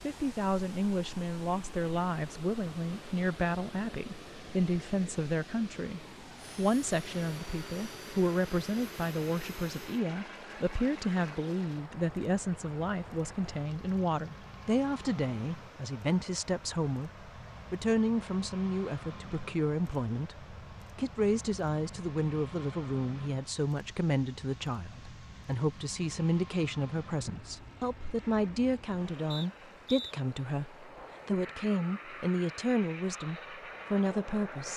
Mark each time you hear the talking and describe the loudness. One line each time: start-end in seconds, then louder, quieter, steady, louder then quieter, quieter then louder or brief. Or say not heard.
0.0-17.1 steady
17.7-34.7 steady.